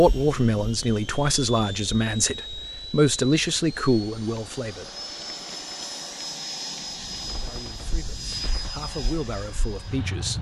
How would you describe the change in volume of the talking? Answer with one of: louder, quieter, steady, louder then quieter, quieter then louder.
quieter then louder.